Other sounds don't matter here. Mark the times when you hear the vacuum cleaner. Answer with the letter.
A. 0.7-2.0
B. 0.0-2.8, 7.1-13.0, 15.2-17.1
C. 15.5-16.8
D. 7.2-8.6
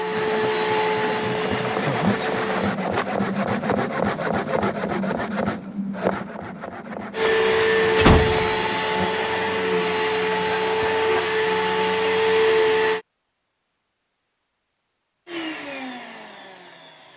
B.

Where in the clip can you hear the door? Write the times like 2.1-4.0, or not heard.
7.2-8.6.